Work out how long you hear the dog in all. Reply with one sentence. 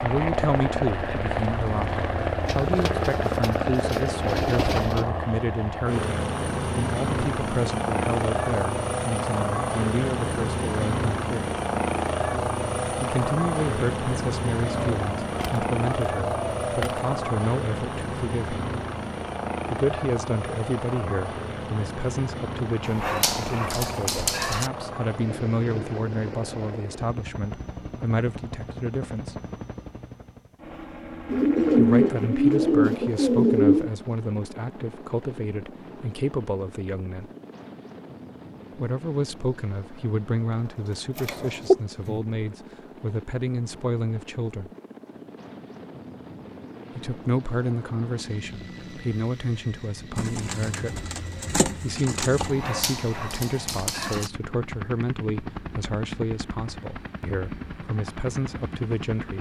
You can hear the dog for 4 seconds altogether.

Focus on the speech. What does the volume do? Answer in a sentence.
The loudness of the speech stays about the same.